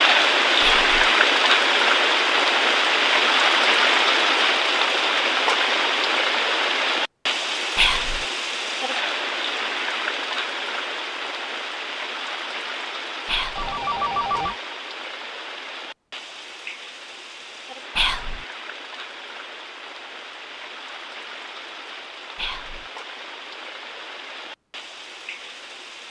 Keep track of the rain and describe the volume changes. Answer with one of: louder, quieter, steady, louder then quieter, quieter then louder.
quieter.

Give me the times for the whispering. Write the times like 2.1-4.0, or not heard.
0.6-1.1, 7.8-8.2, 13.2-13.8, 17.9-18.4, 22.4-22.9.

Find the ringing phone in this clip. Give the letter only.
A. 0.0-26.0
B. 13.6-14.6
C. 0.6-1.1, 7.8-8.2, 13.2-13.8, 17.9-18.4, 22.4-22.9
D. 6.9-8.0
B.